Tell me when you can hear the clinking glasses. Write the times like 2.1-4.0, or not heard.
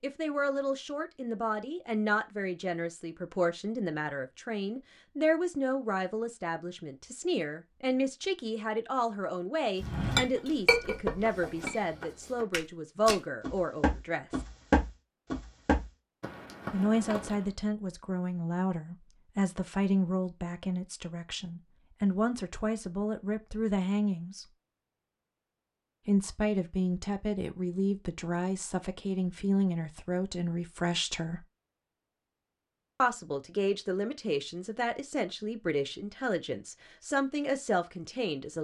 10.2-11.8.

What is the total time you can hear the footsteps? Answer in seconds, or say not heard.
8 s.